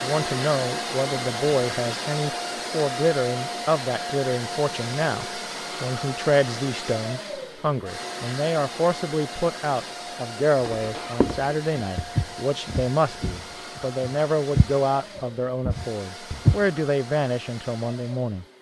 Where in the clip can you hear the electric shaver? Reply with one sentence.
You can't hear the electric shaver here.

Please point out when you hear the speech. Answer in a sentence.
You can hear the speech from 0.0 to 18.4 s.